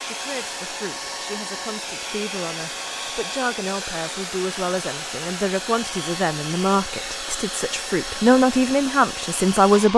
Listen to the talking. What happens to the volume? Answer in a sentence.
The loudness of the talking goes up.